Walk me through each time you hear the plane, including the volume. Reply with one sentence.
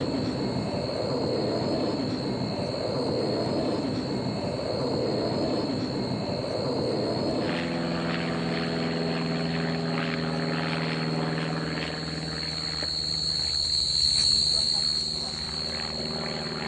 The plane can be heard from 0.0 to 16.6 s, getting quieter.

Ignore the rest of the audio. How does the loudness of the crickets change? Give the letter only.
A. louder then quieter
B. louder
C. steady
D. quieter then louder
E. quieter
B.